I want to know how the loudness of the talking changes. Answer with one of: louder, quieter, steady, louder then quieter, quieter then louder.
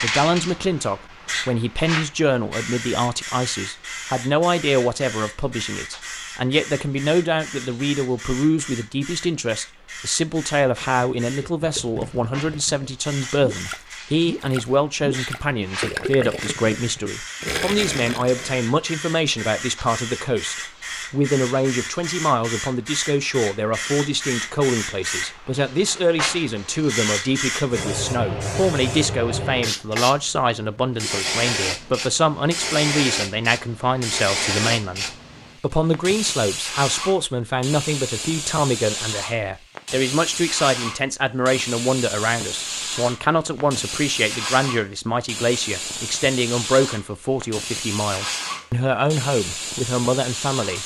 steady.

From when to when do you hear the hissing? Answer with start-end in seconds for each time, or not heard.
0.0-50.8.